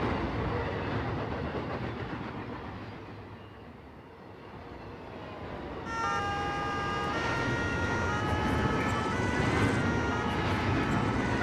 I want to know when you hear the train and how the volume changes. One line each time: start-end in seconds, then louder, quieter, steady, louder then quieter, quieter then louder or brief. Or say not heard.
0.0-11.3 quieter then louder.